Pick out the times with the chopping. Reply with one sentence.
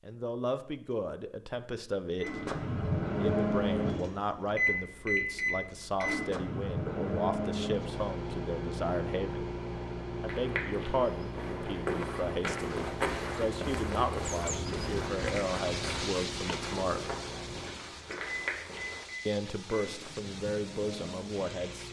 You can't hear the chopping here.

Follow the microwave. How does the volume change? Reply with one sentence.
The volume of the microwave goes down.